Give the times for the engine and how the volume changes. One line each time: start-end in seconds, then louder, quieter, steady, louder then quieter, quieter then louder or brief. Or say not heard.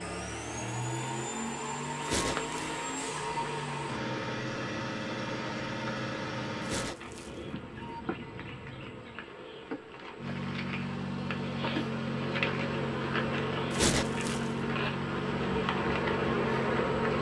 0.0-7.0 steady
10.2-17.1 steady.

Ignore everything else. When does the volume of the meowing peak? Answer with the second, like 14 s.
14 s.